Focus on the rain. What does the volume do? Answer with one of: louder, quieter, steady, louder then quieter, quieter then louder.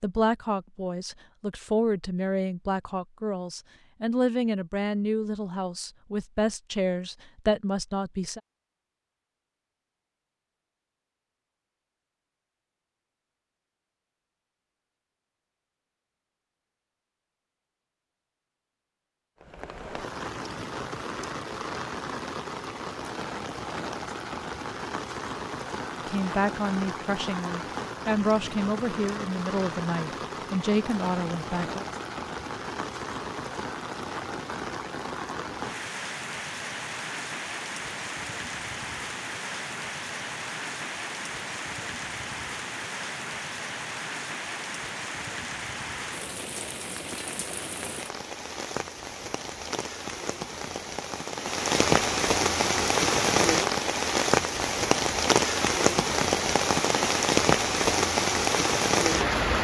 louder.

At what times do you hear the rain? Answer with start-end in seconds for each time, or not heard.
19.4-59.5.